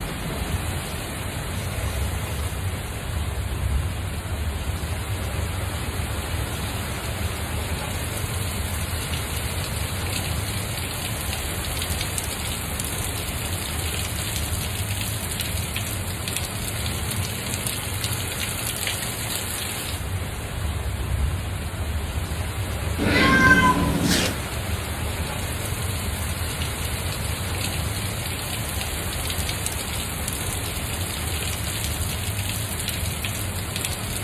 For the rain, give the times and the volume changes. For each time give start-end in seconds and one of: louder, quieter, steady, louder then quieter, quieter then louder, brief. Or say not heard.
0.0-34.1 steady.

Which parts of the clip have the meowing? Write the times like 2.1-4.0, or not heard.
22.9-24.4.